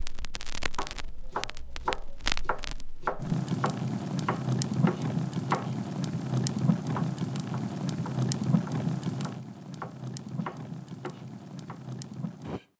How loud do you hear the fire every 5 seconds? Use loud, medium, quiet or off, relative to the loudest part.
loud, loud, medium.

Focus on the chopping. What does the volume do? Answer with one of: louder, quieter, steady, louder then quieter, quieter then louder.
quieter then louder.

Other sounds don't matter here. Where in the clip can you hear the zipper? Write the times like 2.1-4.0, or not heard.
not heard.